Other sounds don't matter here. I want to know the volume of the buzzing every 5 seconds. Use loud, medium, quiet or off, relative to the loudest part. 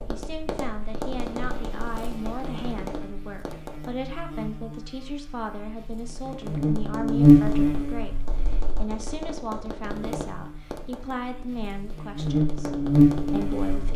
quiet, loud, loud.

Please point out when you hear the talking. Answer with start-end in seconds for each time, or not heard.
0.1-13.9.